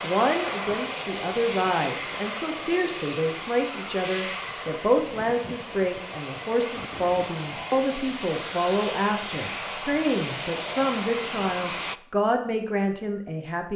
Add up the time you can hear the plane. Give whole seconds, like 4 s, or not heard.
12 s.